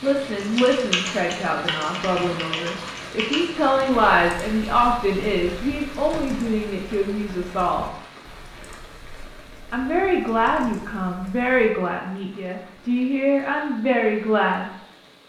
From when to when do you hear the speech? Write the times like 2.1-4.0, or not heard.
0.0-7.9, 9.7-14.7.